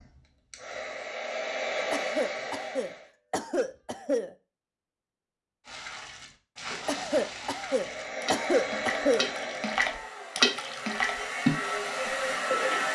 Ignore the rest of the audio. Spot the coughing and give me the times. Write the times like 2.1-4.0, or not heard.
1.9-4.3, 6.8-9.3.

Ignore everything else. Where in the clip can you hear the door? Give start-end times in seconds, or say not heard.
not heard.